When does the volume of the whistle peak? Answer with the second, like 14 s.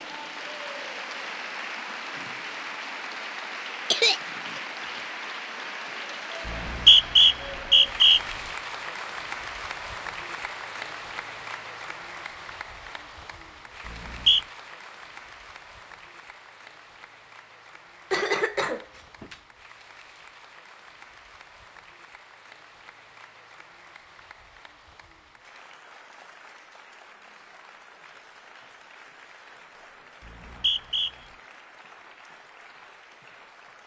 7 s.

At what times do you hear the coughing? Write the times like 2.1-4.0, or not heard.
3.9-4.6, 18.1-19.4.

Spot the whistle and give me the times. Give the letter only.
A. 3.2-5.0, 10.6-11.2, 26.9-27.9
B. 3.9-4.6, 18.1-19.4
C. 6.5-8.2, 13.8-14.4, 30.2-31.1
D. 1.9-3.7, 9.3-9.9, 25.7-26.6
C.